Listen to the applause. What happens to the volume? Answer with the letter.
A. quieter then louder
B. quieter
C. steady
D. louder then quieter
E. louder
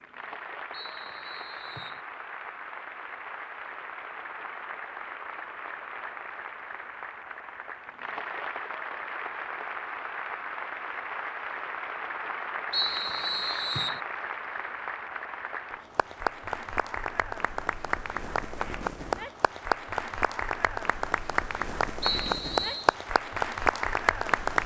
E.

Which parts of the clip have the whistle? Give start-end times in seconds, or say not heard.
0.7-2.0, 12.7-14.0, 22.0-22.9.